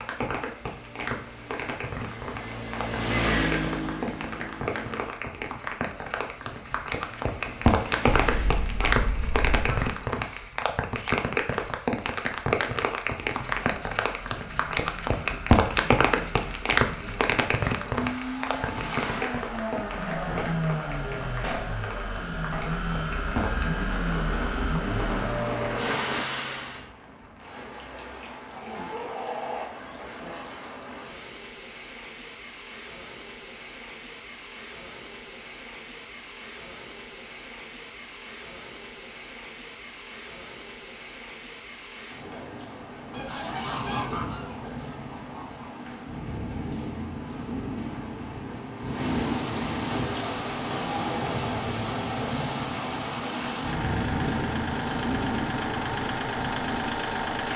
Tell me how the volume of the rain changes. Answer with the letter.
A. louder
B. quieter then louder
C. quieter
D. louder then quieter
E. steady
B.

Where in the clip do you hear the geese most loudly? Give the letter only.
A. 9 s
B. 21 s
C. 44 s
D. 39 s
C.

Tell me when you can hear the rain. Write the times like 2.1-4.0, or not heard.
0.0-57.5.